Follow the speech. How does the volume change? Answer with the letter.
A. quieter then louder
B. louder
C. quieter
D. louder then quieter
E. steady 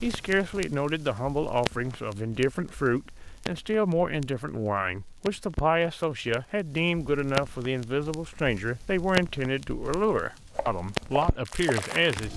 E.